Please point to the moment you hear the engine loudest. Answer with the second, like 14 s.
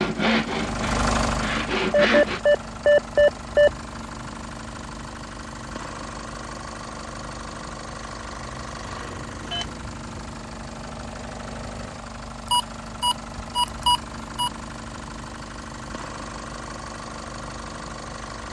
1 s.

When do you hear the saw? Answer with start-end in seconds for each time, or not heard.
0.0-2.4.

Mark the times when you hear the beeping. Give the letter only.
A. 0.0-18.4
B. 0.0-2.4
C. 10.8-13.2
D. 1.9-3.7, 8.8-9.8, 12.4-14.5
D.